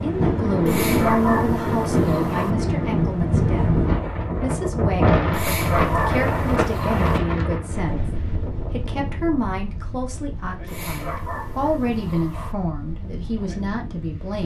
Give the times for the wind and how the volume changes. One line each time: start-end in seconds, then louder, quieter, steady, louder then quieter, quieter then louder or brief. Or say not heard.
0.0-14.4 quieter.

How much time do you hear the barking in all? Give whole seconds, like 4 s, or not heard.
6 s.